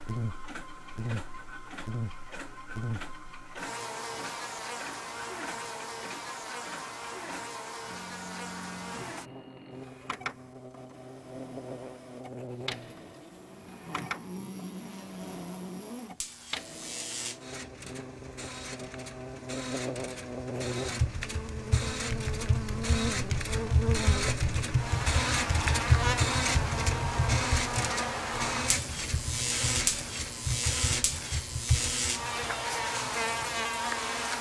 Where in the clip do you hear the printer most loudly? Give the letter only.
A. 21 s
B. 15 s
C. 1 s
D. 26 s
D.